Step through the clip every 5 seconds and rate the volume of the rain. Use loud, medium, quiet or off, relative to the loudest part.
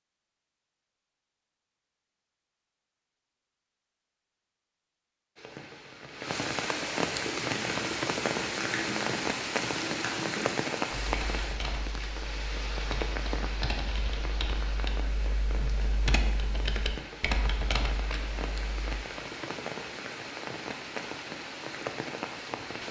off, loud, loud, medium, medium.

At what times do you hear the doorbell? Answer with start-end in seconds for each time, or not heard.
not heard.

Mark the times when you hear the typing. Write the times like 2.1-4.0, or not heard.
7.2-19.0.